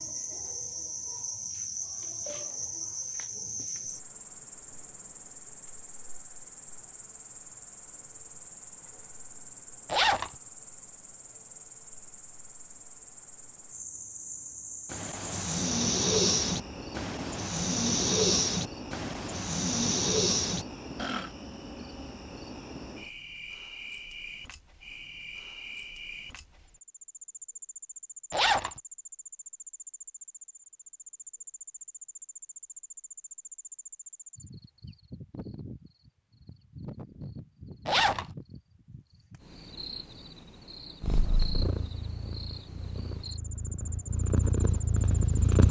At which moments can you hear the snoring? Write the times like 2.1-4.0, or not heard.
14.9-21.3.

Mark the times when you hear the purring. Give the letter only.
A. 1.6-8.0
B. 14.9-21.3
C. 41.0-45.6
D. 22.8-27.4
C.